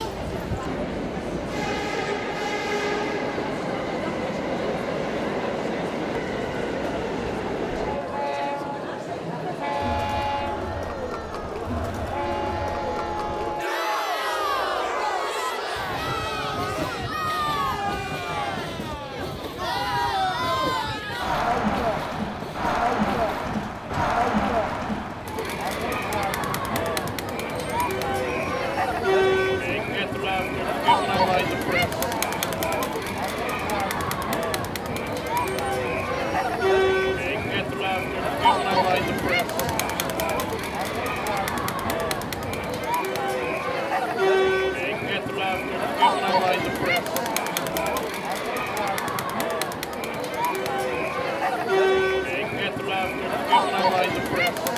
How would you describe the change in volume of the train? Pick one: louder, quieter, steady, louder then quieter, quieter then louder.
quieter.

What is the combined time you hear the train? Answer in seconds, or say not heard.
43 s.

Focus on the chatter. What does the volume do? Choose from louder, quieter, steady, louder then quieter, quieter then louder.
louder.